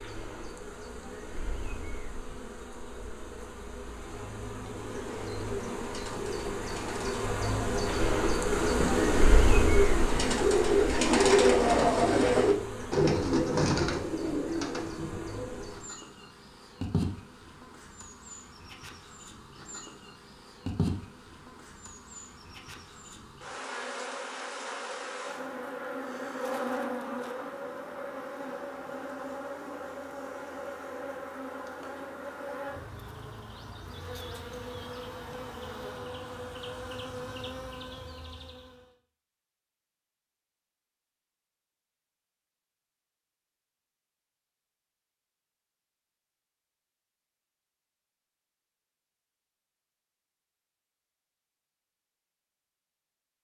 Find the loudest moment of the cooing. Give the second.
11 s.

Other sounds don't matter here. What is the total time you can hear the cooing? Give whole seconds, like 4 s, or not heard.
11 s.